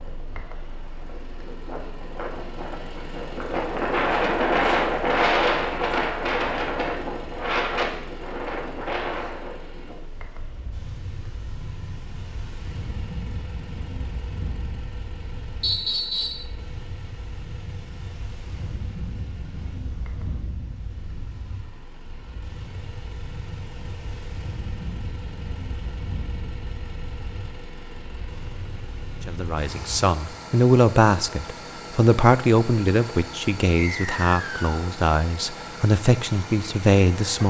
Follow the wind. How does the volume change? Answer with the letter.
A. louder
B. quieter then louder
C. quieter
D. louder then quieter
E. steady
C.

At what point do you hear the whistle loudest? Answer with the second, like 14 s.
16 s.